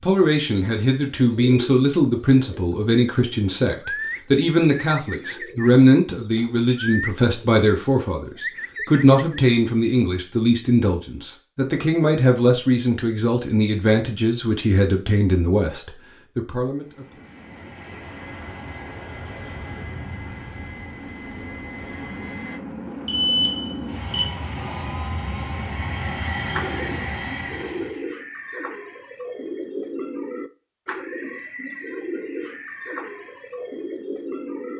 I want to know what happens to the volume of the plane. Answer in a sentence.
The loudness of the plane goes up.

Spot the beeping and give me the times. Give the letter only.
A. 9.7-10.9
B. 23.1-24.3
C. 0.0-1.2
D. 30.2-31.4
B.